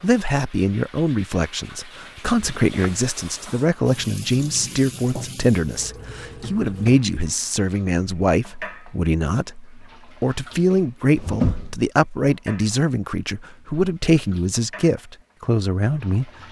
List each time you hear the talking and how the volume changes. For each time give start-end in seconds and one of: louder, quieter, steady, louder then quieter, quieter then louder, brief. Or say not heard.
0.0-16.3 steady.